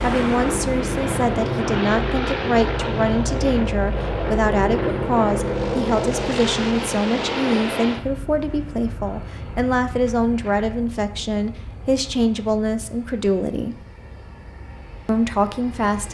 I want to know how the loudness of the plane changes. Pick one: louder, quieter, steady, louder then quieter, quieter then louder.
quieter.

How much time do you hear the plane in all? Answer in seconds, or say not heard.
16 s.